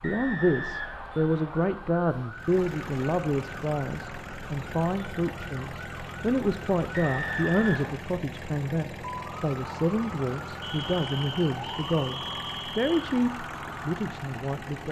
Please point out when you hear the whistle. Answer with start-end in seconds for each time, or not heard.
0.0-1.8, 6.9-8.0, 10.6-13.1.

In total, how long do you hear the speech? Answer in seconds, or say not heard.
15 s.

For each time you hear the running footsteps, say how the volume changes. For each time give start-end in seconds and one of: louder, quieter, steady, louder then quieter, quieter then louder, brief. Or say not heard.
not heard.